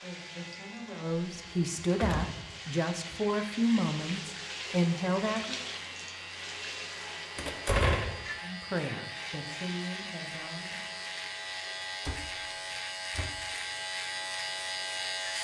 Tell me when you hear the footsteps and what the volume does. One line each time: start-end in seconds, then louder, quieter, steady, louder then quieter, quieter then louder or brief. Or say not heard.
not heard.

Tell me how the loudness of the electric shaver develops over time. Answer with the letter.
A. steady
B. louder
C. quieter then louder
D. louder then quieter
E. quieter
B.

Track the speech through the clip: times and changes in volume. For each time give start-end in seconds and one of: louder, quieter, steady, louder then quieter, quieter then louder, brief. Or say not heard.
0.0-5.5 louder
8.4-11.0 brief.